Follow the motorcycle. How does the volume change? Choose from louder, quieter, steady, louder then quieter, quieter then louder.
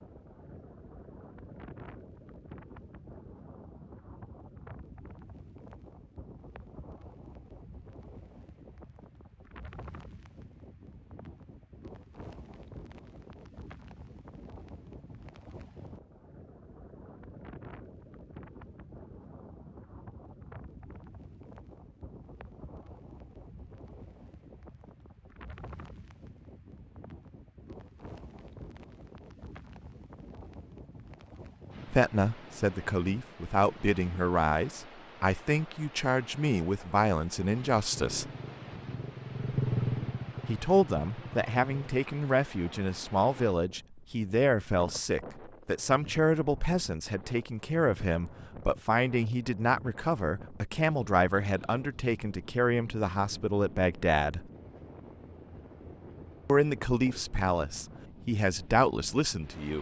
louder then quieter.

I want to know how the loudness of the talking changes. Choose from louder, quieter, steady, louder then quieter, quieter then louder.
steady.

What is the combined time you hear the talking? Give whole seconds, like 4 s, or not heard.
24 s.